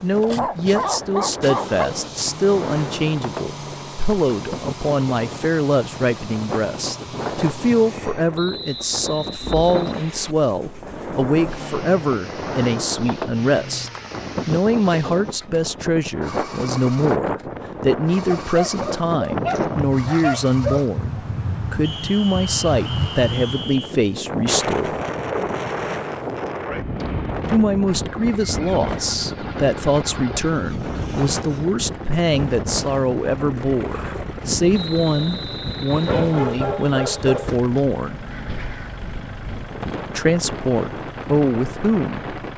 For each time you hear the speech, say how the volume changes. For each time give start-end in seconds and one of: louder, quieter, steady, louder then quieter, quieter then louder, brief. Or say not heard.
0.0-25.0 steady
27.4-38.2 steady
40.1-42.4 brief.